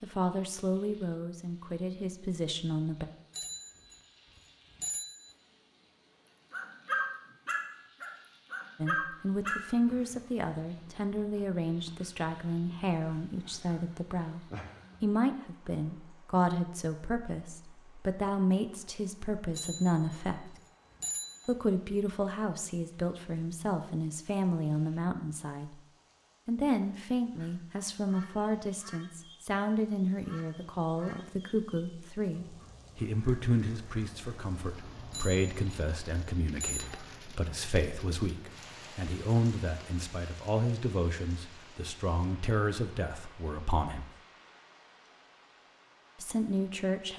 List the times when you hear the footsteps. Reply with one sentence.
The footsteps can't be heard in this clip.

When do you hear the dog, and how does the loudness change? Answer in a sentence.
The dog can be heard from 6.5 to 15.1 s, getting quieter then louder.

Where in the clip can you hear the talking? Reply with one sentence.
You can hear the talking from 0.0 to 3.0 s, from 8.8 to 20.6 s, from 21.4 to 25.8 s, from 26.4 to 44.1 s and from 46.2 to 47.1 s.